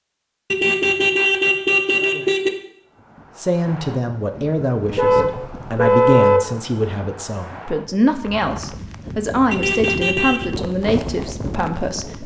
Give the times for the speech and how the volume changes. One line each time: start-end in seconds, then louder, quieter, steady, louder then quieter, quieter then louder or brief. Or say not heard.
3.4-12.2 steady.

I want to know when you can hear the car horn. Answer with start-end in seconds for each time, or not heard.
0.5-2.5, 5.0-6.4, 9.5-10.5.